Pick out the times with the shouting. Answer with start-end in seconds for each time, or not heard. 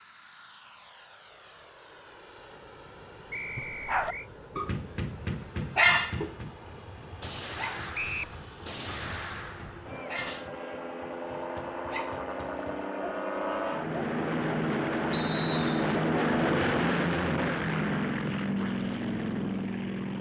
not heard.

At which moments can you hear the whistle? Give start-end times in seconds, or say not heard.
3.3-4.3, 7.9-8.3, 15.1-15.9.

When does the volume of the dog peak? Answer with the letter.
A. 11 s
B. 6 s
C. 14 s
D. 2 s
B.